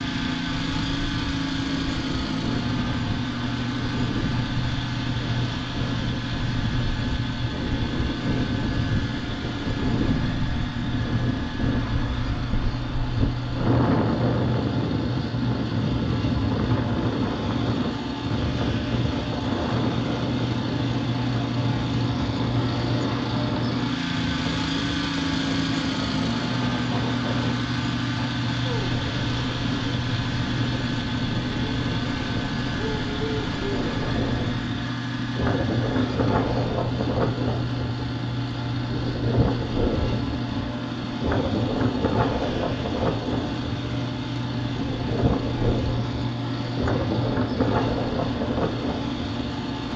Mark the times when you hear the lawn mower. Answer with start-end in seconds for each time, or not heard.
0.0-49.9.